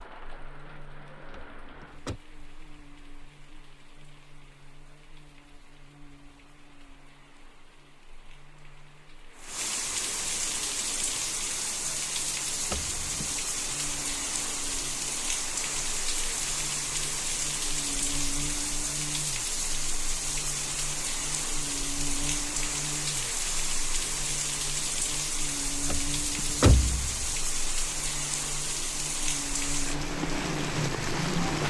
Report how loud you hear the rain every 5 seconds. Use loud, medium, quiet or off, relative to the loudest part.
quiet, quiet, loud, loud, loud, loud, loud.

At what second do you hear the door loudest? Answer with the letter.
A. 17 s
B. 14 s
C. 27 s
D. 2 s
C.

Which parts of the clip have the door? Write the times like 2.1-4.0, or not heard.
1.3-2.2, 12.7-13.3, 25.9-27.3.